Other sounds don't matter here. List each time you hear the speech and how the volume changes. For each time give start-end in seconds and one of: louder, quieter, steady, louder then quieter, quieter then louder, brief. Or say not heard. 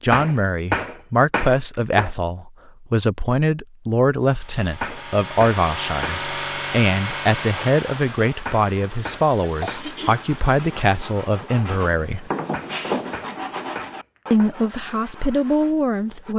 0.0-12.3 steady
14.3-16.3 brief.